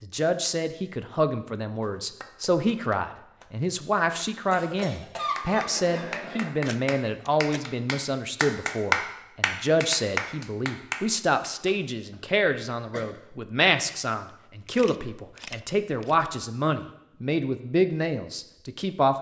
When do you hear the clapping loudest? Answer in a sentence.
The volume of the clapping peaks at 9 seconds.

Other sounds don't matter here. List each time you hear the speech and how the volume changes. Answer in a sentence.
You can hear the speech from 0.0 to 19.1 s, at a steady volume.